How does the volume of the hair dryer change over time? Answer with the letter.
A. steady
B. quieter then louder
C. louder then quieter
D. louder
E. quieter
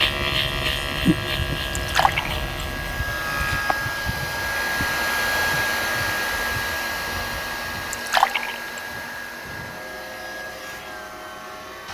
C.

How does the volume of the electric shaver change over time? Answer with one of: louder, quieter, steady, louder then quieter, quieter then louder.
quieter.